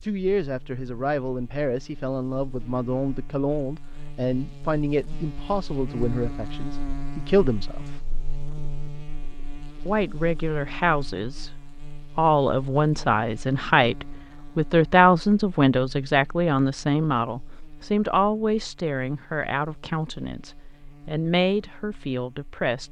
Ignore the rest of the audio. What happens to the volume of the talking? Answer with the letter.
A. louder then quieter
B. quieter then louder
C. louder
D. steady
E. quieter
A.